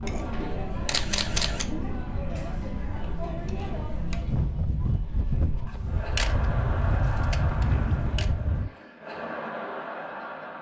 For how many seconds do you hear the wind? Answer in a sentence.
The wind can be heard for 9 seconds in total.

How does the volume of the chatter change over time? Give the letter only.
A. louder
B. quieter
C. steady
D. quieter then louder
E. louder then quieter
D.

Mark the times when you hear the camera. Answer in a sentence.
The camera can be heard from 0.8 to 1.6 s, from 5.7 to 6.5 s and from 7.0 to 8.2 s.